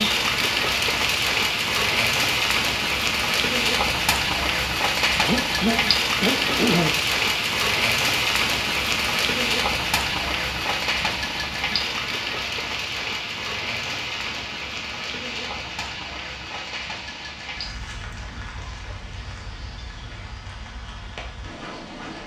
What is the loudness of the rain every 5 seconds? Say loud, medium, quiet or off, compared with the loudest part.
loud, loud, medium, quiet, quiet.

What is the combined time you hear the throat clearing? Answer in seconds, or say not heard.
2 s.